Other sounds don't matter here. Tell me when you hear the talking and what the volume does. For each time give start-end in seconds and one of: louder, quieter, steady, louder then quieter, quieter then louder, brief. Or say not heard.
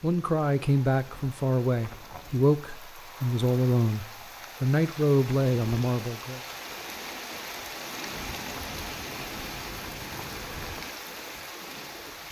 0.0-6.4 steady.